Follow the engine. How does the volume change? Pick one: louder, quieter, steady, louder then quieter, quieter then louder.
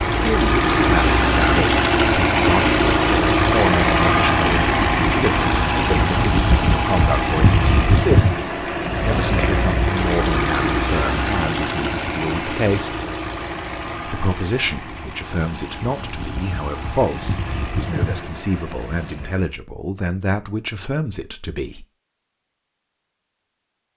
quieter.